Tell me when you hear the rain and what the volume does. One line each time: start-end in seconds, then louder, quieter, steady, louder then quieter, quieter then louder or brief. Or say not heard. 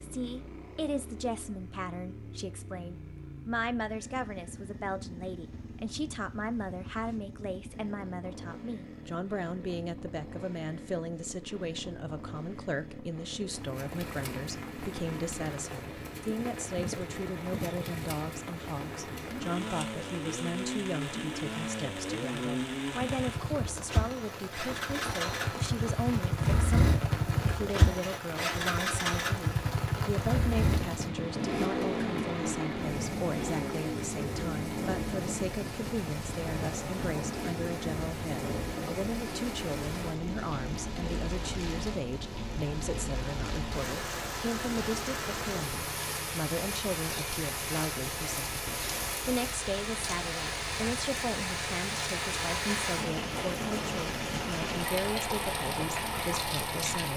13.4-57.1 louder.